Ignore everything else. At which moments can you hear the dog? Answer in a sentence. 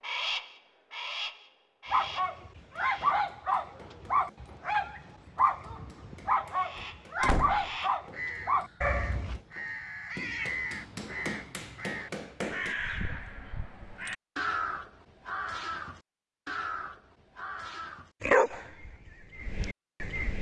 The dog can be heard from 1.9 to 9.4 s and from 18.2 to 20.3 s.